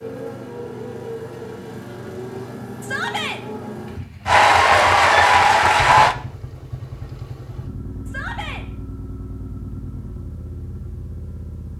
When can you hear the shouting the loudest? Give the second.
3 s.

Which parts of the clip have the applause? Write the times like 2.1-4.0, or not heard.
4.2-6.2.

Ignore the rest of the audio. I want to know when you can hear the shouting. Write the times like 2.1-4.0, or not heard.
2.8-3.4, 8.1-8.7.